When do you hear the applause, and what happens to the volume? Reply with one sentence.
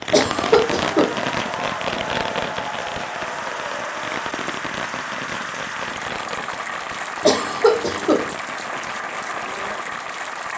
You can hear the applause from 0.2 to 10.5 s, at a steady volume.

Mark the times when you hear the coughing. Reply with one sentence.
The coughing can be heard from 0.1 to 1.2 s and from 7.2 to 8.3 s.